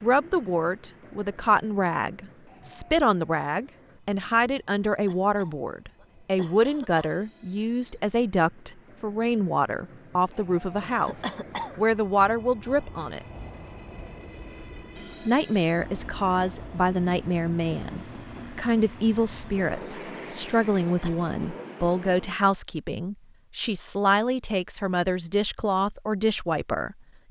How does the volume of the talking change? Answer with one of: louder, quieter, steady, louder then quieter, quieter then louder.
steady.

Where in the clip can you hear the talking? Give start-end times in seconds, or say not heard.
0.0-13.2, 15.2-27.2.